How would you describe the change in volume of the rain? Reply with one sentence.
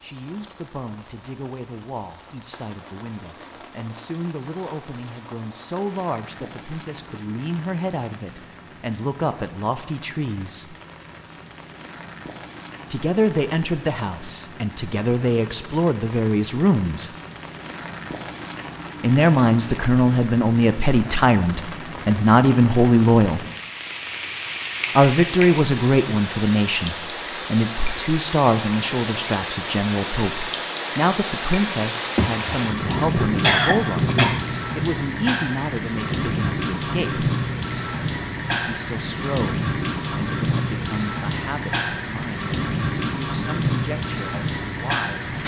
The loudness of the rain goes up.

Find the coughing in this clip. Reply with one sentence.
You can hear the coughing from 32.1 to 34.5 s.